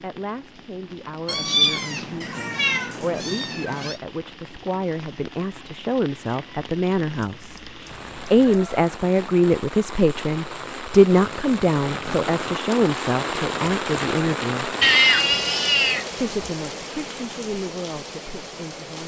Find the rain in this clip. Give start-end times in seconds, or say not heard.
0.0-19.0.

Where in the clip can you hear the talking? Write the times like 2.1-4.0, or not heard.
0.0-14.8, 16.1-19.0.